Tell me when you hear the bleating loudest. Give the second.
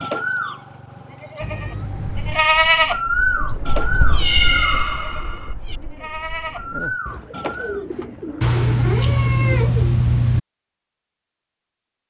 3 s.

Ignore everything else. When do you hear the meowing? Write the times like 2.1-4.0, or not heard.
1.4-2.5, 4.1-5.8, 8.4-10.4.